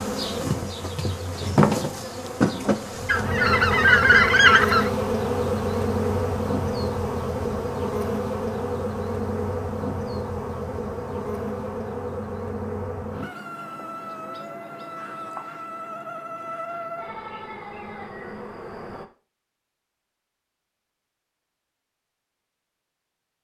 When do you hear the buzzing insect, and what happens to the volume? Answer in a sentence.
The buzzing insect can be heard from 0.0 to 19.1 s, getting quieter.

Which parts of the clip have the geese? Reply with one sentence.
You can hear the geese from 3.0 to 4.9 s.